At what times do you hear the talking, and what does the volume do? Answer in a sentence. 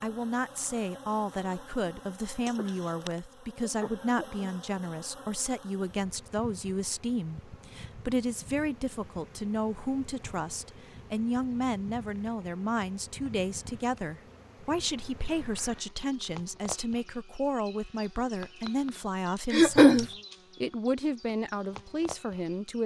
You can hear the talking from 0.0 to 22.8 s, at a steady volume.